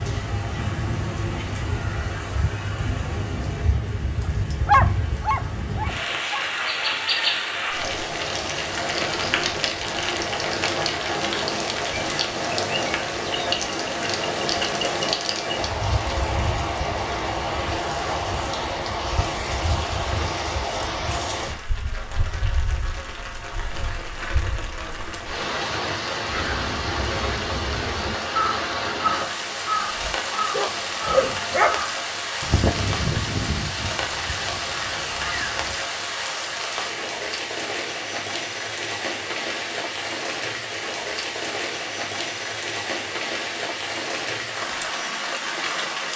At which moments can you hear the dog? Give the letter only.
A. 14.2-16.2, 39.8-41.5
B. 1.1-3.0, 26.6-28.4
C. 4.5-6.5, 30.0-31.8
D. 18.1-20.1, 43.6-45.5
C.